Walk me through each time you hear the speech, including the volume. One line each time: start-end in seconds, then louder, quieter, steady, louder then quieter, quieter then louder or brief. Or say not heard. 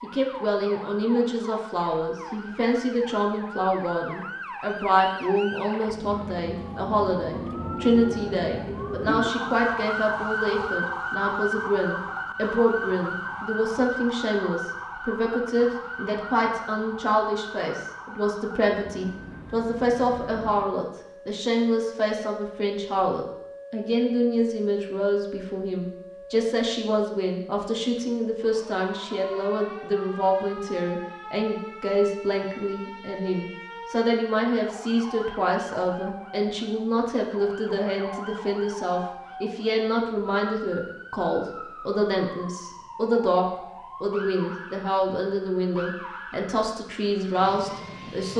0.0-48.3 steady.